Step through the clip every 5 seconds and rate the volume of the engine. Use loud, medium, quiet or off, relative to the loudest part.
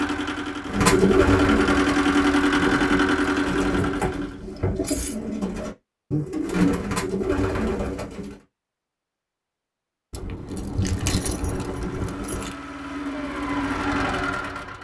loud, off, medium.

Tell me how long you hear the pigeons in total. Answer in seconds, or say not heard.
8 s.